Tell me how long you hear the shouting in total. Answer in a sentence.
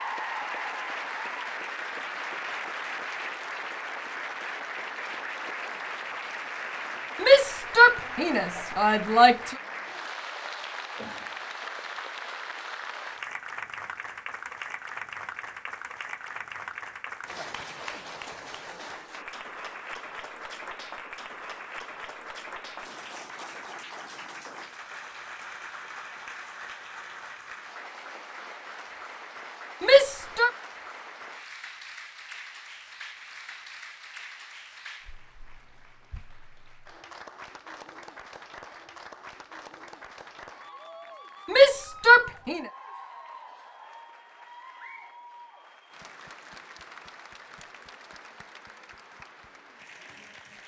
You can hear the shouting for 4 seconds altogether.